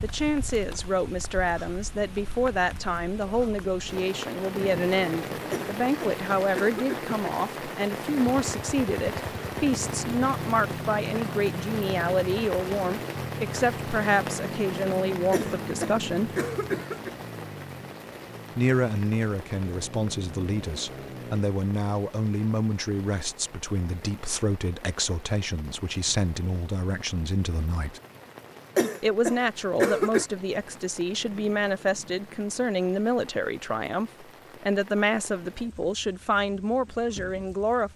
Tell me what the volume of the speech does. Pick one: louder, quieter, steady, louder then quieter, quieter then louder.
steady.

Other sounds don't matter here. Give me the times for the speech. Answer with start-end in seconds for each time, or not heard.
0.0-16.3, 18.6-28.0, 29.0-37.9.